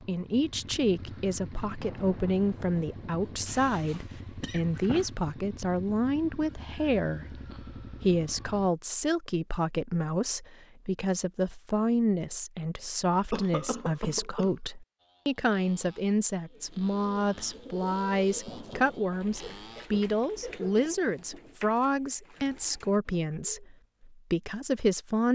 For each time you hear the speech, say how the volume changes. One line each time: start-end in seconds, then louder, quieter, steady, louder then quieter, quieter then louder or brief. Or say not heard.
0.1-25.3 steady.